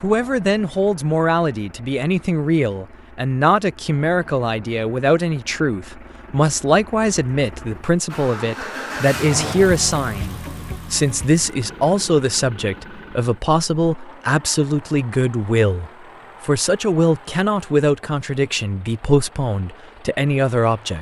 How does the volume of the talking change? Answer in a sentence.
The loudness of the talking stays about the same.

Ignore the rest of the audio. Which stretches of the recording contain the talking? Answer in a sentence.
You can hear the talking from 0.0 to 20.9 s.